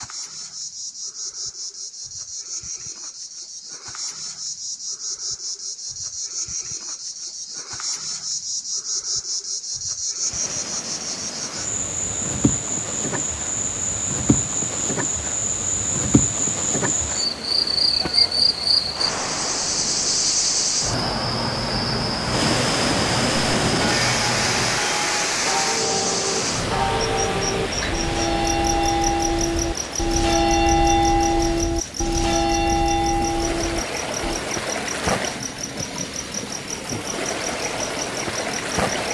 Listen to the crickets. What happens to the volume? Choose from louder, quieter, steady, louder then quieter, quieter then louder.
louder then quieter.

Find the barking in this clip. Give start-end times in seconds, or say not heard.
not heard.